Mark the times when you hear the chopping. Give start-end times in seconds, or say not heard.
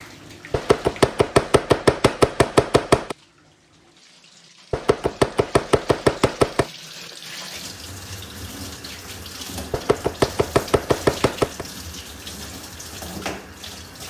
0.5-3.1, 4.7-6.7, 9.7-11.7.